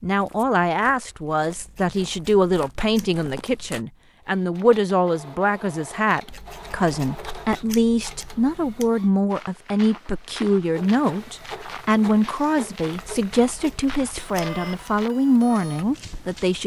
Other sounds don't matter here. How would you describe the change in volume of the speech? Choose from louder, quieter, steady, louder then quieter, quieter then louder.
steady.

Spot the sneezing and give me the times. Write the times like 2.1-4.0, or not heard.
not heard.